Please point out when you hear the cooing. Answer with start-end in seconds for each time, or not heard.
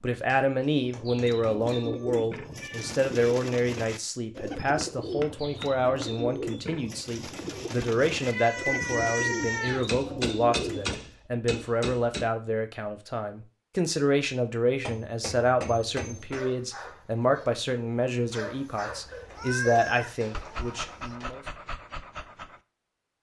0.8-11.1.